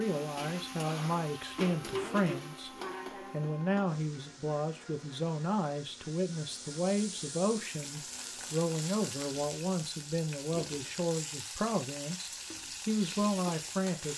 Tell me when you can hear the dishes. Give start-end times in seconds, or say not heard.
not heard.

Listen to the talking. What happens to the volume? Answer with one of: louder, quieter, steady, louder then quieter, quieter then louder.
steady.